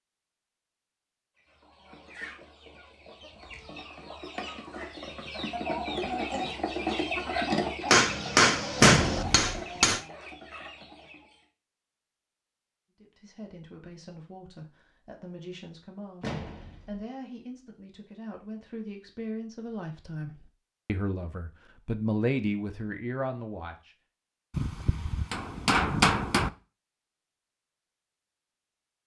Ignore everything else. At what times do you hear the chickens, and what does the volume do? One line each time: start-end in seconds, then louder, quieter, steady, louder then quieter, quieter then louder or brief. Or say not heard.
1.4-11.4 louder then quieter.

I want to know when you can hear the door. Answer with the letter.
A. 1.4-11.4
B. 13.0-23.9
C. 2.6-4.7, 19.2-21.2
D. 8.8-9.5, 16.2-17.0
D.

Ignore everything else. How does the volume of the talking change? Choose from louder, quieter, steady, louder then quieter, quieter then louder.
louder.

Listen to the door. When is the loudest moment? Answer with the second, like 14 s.
9 s.